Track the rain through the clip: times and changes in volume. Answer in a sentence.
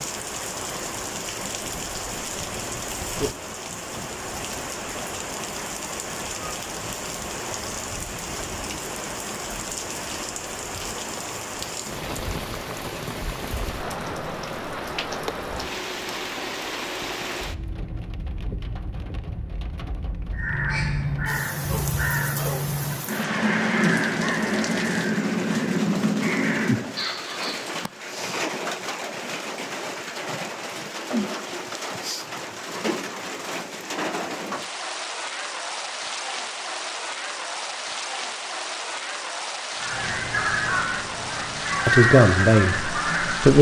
You can hear the rain from 0.0 to 43.5 s, at a steady volume.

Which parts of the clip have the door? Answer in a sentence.
The door can't be heard in this clip.